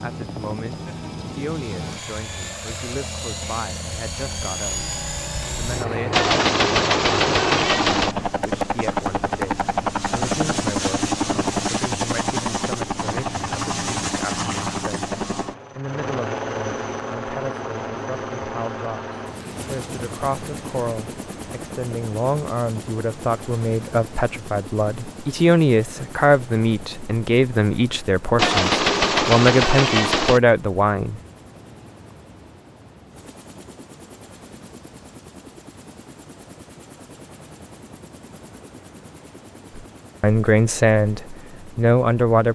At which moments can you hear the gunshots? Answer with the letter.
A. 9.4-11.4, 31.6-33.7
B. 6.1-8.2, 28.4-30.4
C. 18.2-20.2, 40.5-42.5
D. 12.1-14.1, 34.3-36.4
B.